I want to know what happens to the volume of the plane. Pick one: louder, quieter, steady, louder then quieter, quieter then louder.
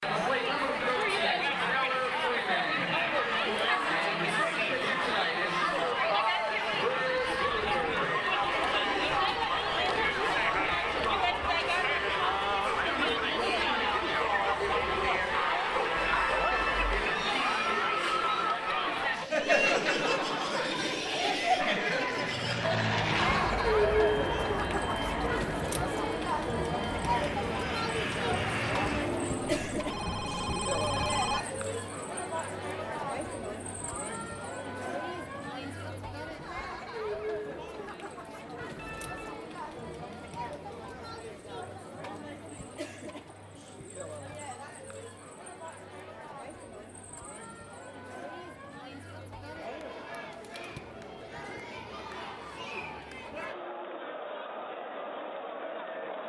quieter then louder.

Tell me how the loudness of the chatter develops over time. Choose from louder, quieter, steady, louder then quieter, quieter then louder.
quieter.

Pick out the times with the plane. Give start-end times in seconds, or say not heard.
22.1-29.6.